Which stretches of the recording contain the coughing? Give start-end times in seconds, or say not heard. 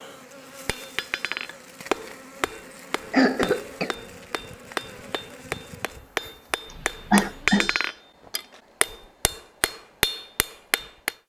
3.1-4.0, 6.7-7.7.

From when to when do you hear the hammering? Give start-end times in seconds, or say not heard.
0.7-11.2.